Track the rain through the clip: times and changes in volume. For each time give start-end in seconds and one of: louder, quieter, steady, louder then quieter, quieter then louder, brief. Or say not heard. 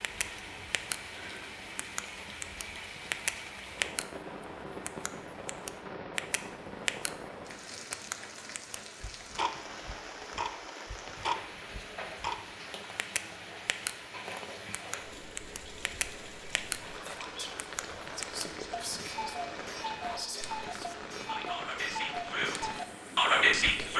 0.0-23.9 steady.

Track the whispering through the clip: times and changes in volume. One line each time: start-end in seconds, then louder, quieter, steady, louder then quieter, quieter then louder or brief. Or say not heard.
16.4-23.9 louder.